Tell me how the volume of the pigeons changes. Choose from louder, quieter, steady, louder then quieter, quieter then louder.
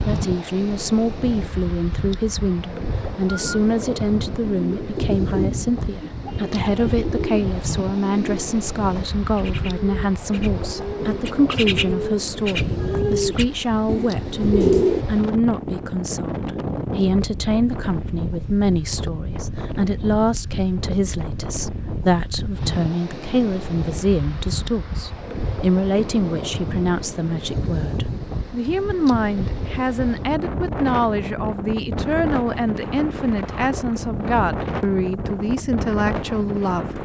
quieter then louder.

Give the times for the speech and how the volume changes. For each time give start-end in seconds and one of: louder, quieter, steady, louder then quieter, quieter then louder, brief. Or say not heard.
0.1-37.0 steady.